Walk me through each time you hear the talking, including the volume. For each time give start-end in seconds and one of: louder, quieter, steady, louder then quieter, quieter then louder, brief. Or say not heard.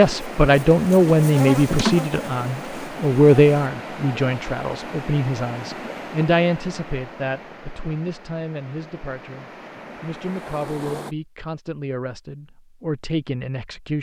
0.0-13.9 quieter.